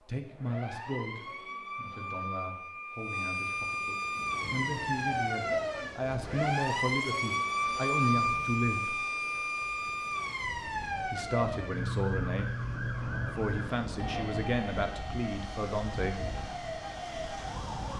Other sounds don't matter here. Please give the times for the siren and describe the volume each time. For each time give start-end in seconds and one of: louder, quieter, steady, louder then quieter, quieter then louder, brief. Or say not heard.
0.0-17.9 louder then quieter.